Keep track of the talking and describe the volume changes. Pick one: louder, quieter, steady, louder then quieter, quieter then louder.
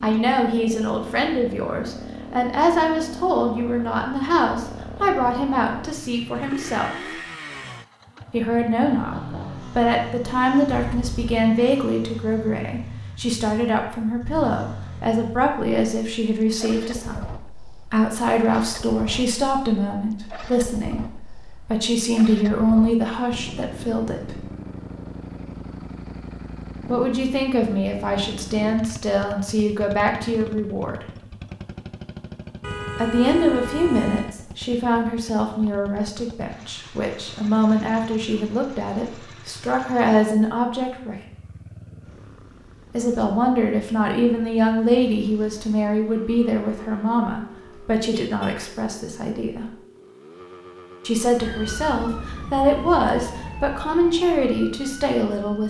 steady.